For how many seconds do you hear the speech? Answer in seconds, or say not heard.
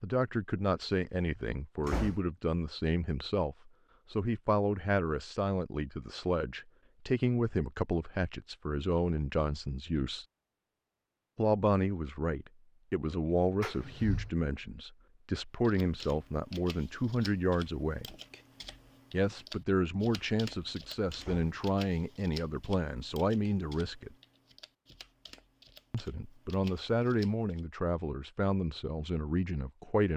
26 s.